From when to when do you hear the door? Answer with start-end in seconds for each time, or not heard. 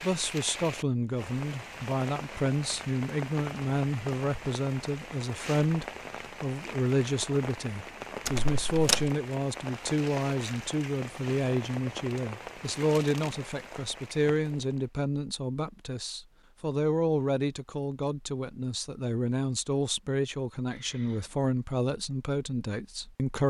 8.2-9.1.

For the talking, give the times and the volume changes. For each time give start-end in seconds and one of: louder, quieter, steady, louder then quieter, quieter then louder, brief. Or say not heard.
0.0-23.4 steady.